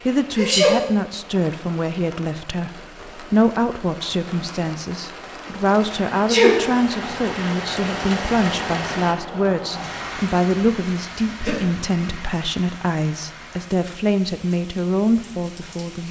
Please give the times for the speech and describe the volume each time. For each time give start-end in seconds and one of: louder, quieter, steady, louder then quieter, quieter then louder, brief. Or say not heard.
0.1-16.0 steady.